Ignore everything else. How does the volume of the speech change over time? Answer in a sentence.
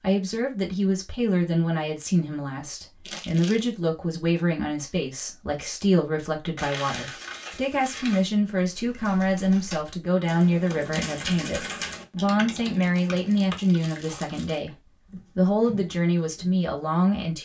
The loudness of the speech stays about the same.